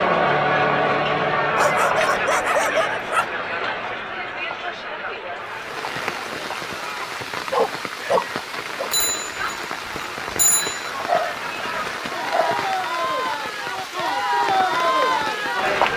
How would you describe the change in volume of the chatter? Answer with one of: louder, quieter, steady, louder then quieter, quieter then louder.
quieter then louder.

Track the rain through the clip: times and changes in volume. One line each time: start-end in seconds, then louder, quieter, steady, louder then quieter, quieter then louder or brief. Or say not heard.
5.3-15.9 steady.